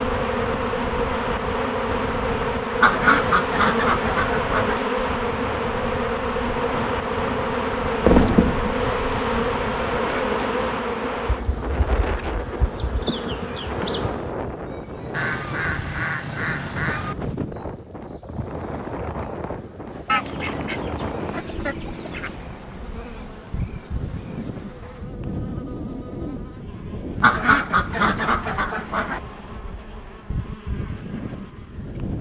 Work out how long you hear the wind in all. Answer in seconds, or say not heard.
32 s.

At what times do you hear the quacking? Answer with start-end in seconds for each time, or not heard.
2.8-4.8, 8.0-10.2, 15.1-17.1, 20.1-22.4, 27.2-29.2.